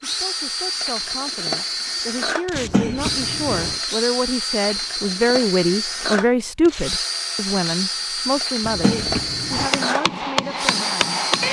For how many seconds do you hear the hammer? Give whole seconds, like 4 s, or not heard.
2 s.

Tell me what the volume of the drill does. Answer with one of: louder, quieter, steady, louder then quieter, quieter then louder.
steady.